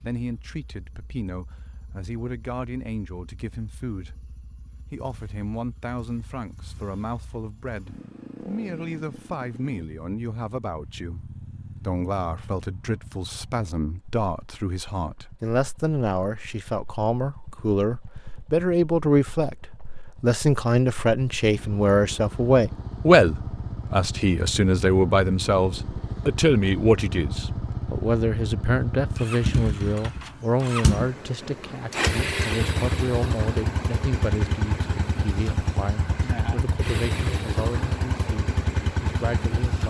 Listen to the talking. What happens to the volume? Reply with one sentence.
The loudness of the talking goes up, then down.